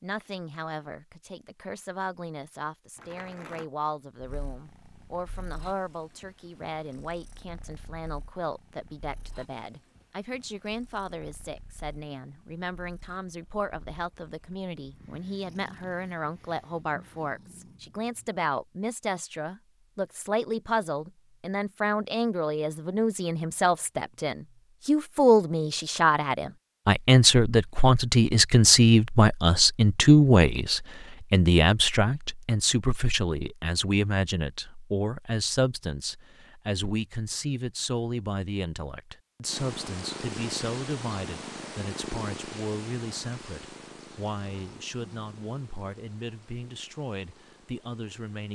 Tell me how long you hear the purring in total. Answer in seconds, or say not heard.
23 s.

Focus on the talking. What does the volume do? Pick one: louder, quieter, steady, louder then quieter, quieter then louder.
louder then quieter.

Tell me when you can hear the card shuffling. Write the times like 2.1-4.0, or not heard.
3.0-3.6.